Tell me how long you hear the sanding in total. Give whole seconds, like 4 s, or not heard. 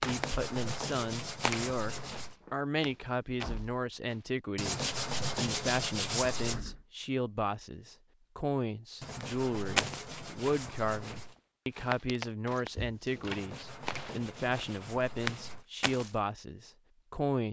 9 s.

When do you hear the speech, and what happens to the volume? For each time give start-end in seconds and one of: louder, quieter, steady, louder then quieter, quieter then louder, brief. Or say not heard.
0.0-17.4 steady.